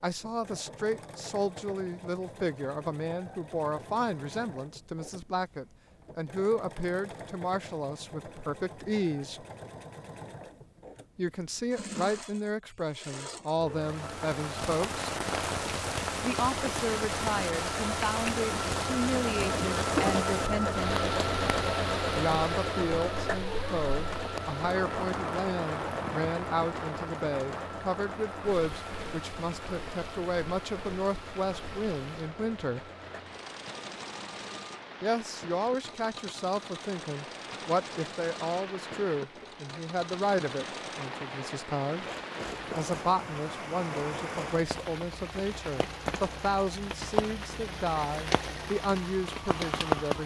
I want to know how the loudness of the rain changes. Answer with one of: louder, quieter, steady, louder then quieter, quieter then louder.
quieter then louder.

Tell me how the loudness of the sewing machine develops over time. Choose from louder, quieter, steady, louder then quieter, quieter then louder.
louder then quieter.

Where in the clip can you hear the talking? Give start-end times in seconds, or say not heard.
0.0-9.4, 11.2-15.1, 16.2-20.8, 22.1-32.9, 35.0-42.0, 42.7-50.2.